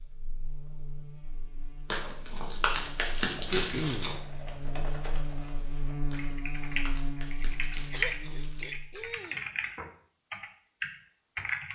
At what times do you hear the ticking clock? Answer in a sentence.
The ticking clock can't be heard in this clip.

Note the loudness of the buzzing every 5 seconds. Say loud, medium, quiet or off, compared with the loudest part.
medium, loud, off.